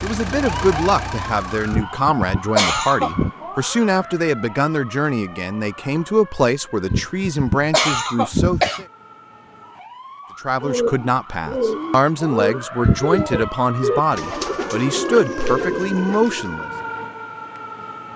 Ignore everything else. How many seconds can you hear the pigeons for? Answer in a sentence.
The pigeons can be heard for 6 seconds in total.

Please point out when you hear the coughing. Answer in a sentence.
You can hear the coughing from 1.7 to 3.3 s, from 6.9 to 8.8 s and from 12.8 to 13.5 s.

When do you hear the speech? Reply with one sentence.
The speech can be heard from 0.0 to 8.8 s and from 10.4 to 16.7 s.